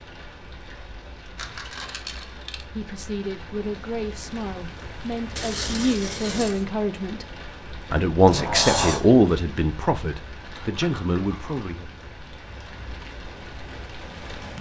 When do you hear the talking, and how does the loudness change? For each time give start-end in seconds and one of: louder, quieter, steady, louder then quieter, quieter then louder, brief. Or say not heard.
2.7-11.9 louder then quieter.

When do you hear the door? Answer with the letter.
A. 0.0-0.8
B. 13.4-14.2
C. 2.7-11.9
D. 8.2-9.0
D.